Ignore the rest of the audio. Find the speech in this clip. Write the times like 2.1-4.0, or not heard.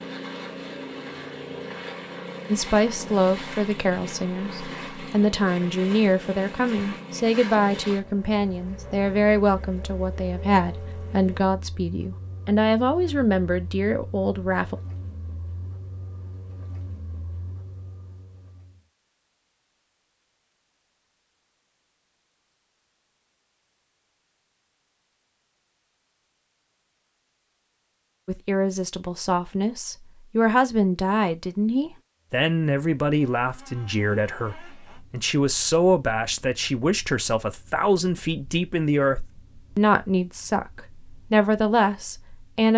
2.5-14.8, 28.2-42.7.